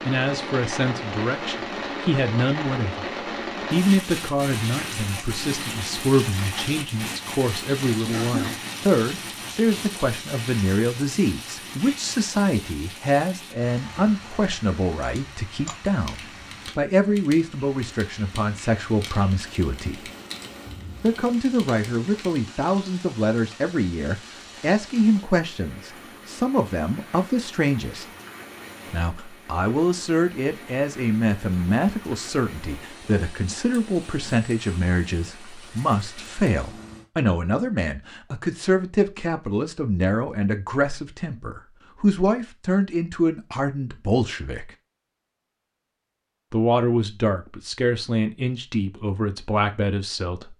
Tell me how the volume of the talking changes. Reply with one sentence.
The volume of the talking stays about the same.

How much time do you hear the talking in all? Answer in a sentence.
You can hear the talking for 46 seconds altogether.